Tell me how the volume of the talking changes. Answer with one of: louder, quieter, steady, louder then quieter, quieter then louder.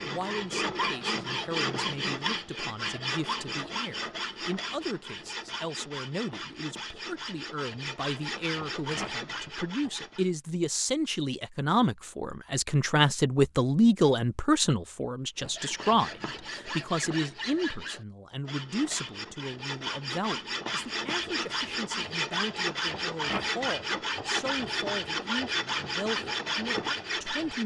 louder then quieter.